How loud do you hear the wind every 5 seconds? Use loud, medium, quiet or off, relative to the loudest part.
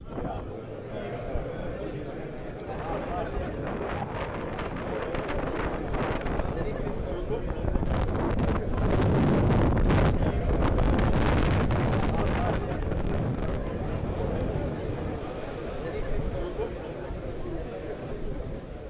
medium, loud, loud, quiet.